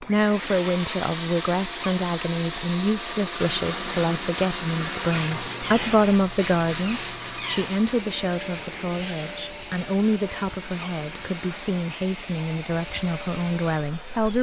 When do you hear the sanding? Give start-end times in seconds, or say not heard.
3.4-11.8.